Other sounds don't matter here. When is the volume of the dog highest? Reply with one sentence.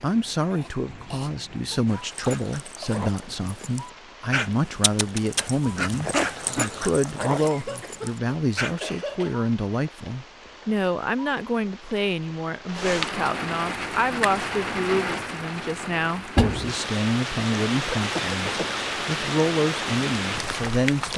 The loudest moment of the dog is at 6 seconds.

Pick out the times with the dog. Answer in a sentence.
The dog can be heard from 1.9 to 8.8 s.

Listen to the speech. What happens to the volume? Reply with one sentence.
The volume of the speech stays about the same.